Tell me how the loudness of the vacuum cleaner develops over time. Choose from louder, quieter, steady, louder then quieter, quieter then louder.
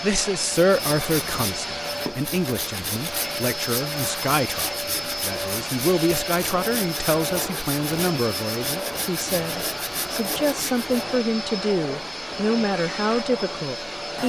steady.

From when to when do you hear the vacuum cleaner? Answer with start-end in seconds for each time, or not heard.
0.0-14.2.